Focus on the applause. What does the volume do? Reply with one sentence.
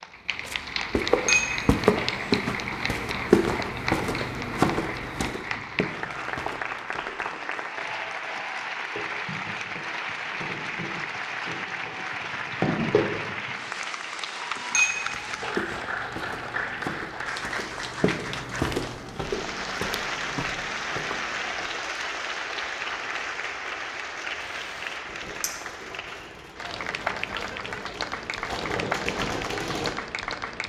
The loudness of the applause stays about the same.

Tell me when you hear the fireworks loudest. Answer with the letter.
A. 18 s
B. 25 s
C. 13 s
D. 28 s
C.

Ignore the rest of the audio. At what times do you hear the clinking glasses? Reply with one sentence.
You can hear the clinking glasses from 1.2 to 2.2 s, from 14.7 to 15.6 s and from 25.4 to 25.9 s.